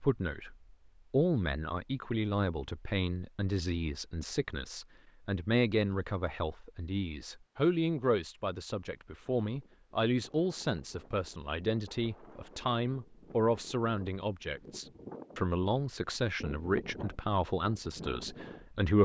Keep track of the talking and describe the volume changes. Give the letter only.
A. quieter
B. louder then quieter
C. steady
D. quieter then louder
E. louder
C.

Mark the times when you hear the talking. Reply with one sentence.
The talking can be heard from 0.0 to 19.0 s.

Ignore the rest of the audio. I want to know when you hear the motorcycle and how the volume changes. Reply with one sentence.
You can't hear the motorcycle here.